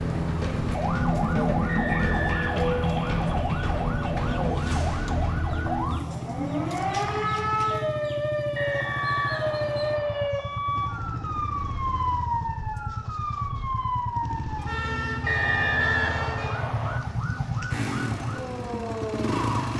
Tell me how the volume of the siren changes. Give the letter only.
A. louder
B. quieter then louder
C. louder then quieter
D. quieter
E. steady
D.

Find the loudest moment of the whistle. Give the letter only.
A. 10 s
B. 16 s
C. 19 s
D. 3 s
B.